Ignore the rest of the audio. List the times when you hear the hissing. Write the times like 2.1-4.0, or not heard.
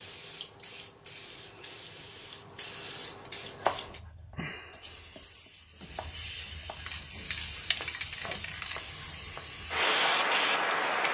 0.0-11.0.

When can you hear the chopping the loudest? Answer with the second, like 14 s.
4 s.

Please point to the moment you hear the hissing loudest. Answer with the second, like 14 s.
10 s.